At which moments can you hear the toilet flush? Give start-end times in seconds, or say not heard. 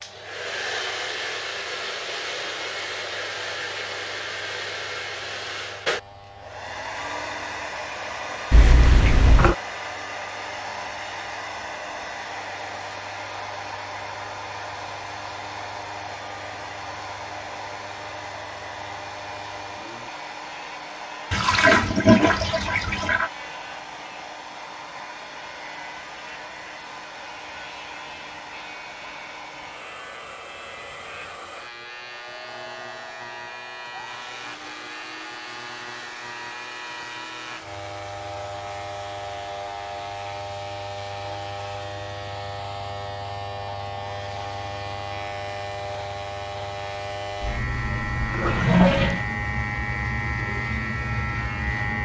8.5-9.6, 21.3-23.3, 47.4-49.2.